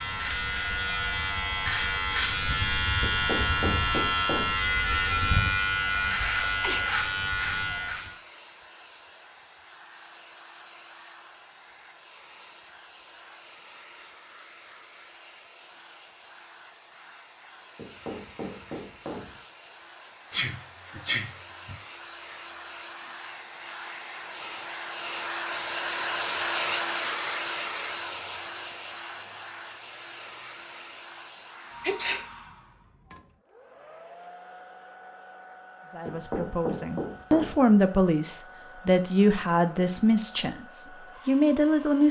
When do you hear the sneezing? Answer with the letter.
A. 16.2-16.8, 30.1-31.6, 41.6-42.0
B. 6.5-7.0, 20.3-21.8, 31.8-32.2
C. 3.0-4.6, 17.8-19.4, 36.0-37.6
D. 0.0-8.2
B.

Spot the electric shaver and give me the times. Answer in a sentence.
The electric shaver can be heard from 0.0 to 8.2 s.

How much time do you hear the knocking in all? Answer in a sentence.
You can hear the knocking for 5 seconds altogether.